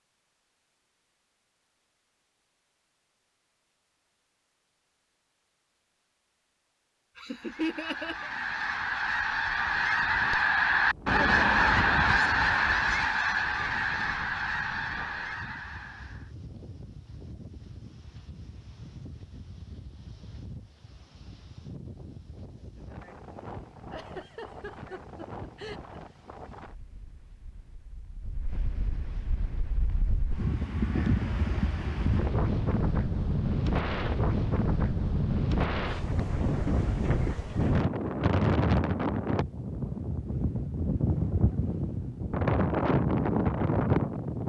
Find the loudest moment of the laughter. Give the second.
8 s.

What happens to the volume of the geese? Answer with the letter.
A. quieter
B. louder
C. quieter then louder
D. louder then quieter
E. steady
D.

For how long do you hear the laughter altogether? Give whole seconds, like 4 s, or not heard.
3 s.